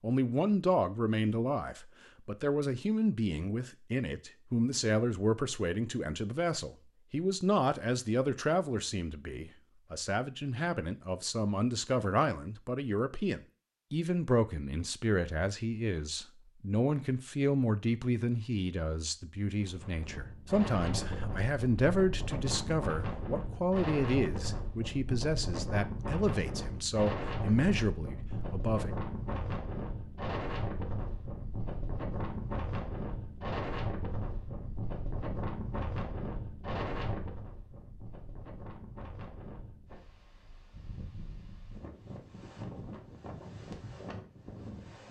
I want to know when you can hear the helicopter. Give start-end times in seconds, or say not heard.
not heard.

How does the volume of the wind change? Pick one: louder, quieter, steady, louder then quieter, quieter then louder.
quieter.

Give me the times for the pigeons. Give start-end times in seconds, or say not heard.
not heard.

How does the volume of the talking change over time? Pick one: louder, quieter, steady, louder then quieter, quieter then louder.
steady.